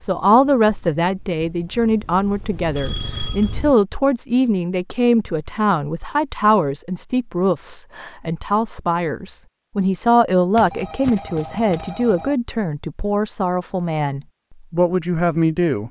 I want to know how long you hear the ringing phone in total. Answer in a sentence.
You can hear the ringing phone for 3 seconds altogether.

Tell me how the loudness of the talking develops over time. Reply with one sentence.
The volume of the talking stays about the same.